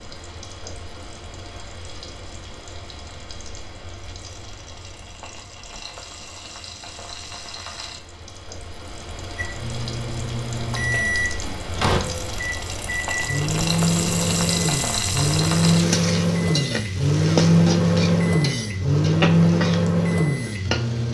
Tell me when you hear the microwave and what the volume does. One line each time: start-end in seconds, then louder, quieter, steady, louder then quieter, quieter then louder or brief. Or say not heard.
9.3-21.0 louder.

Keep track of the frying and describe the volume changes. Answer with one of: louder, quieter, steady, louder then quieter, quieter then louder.
louder.